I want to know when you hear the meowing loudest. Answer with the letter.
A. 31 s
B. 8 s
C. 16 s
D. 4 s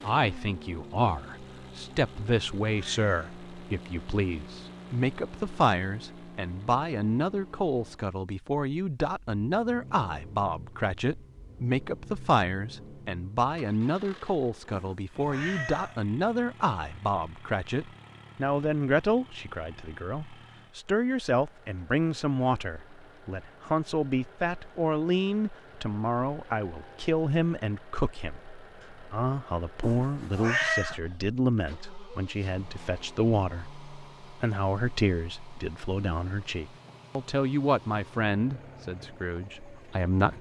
A.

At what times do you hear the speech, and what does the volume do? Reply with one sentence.
You can hear the speech from 0.0 to 40.3 s, at a steady volume.